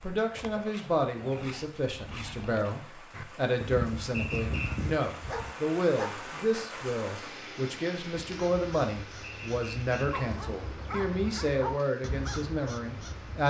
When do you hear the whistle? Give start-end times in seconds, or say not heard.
4.1-4.7, 9.2-10.2.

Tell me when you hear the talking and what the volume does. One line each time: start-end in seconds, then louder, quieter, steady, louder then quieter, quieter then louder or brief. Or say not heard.
0.0-13.4 steady.